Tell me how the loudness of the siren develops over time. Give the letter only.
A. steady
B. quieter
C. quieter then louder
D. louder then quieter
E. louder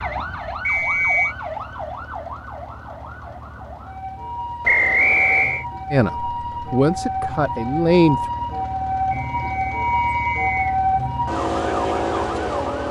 E.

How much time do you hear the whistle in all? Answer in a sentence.
You can hear the whistle for 3 seconds altogether.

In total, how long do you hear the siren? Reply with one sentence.
You can hear the siren for 13 seconds altogether.